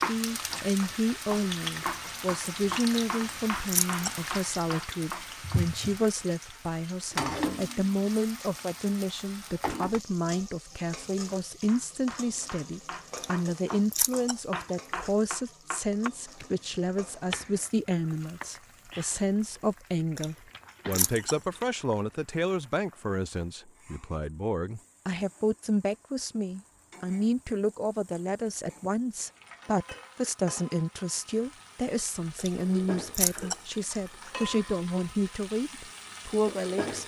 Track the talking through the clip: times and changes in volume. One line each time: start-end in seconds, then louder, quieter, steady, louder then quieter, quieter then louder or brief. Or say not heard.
0.1-37.0 steady.